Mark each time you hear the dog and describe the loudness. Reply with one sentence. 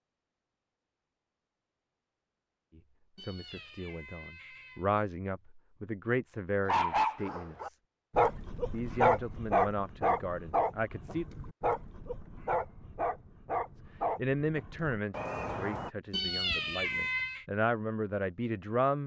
The dog can be heard from 6.7 to 15.9 s, getting quieter.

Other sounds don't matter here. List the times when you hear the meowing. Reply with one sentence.
You can hear the meowing from 3.1 to 4.9 s and from 16.1 to 17.4 s.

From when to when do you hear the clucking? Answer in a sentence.
The clucking can't be heard in this clip.